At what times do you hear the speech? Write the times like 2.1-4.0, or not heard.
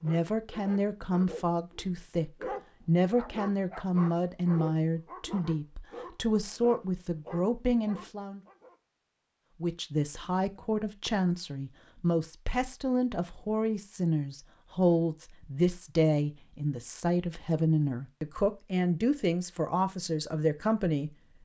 0.0-8.4, 9.6-21.1.